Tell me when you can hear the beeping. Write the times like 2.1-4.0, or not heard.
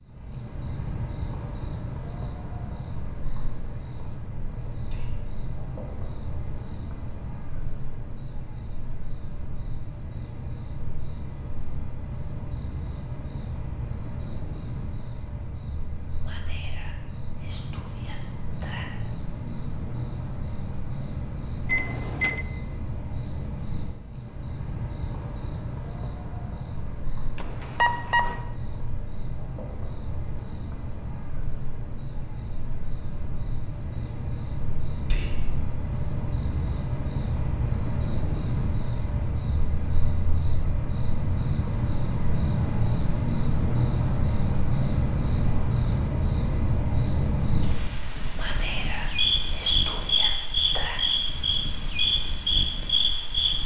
21.6-22.4, 27.4-28.4.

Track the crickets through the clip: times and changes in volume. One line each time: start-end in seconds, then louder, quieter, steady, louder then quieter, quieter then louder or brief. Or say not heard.
0.0-53.6 louder.